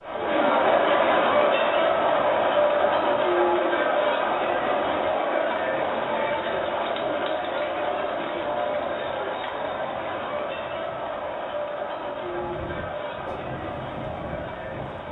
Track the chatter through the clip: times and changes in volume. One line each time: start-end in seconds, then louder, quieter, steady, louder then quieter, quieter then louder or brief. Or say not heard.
0.0-15.0 quieter.